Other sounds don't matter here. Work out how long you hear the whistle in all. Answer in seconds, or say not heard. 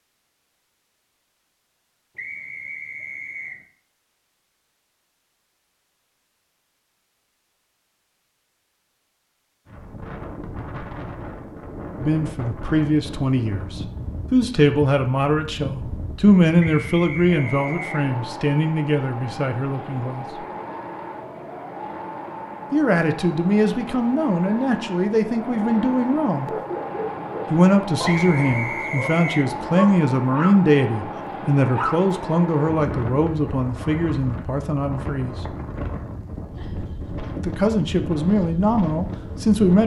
4 s.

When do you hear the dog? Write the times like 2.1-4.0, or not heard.
26.4-32.1.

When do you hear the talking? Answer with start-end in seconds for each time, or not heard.
11.9-20.2, 22.7-26.5, 27.5-35.4, 37.4-39.8.